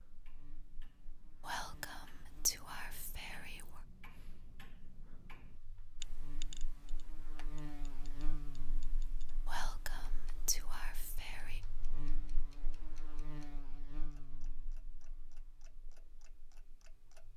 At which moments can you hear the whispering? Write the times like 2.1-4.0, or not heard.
1.4-3.8, 9.4-11.6.